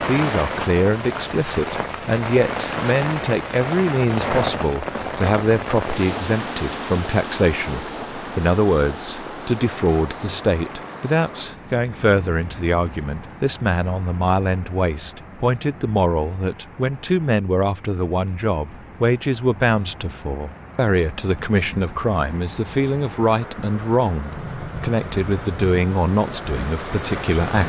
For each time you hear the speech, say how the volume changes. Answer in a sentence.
The speech can be heard from 0.1 to 27.6 s, at a steady volume.